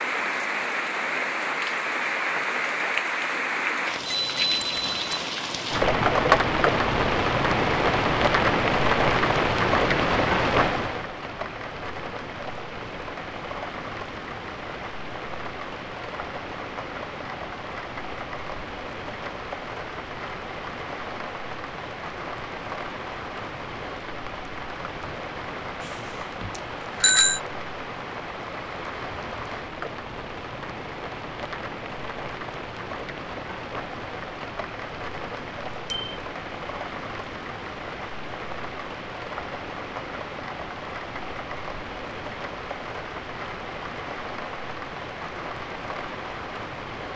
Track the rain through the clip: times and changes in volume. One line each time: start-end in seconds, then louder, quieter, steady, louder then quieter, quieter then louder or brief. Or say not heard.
0.0-47.1 quieter.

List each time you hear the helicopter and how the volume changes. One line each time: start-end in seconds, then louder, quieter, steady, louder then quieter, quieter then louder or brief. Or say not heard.
not heard.